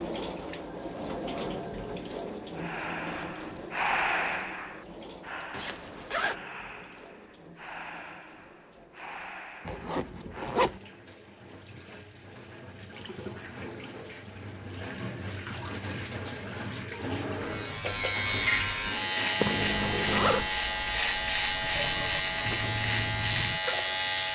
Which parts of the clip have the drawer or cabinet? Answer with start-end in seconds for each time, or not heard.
not heard.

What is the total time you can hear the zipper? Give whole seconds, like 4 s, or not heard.
3 s.